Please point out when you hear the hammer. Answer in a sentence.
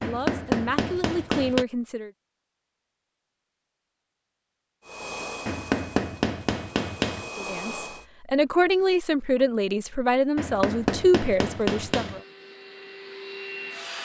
You can hear the hammer from 0.0 to 1.6 s, from 5.5 to 7.3 s and from 10.3 to 12.2 s.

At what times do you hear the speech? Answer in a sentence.
You can hear the speech from 0.0 to 2.1 s and from 7.3 to 12.2 s.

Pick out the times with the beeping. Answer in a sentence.
You can't hear the beeping here.